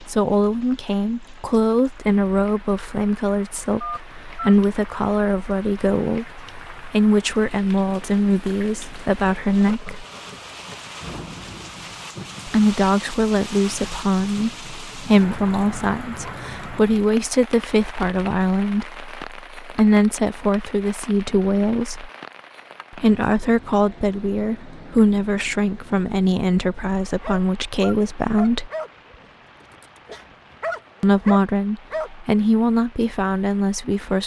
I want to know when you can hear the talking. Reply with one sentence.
The talking can be heard from 0.0 to 10.1 s, from 12.4 to 22.1 s, from 22.9 to 28.7 s and from 31.0 to 34.2 s.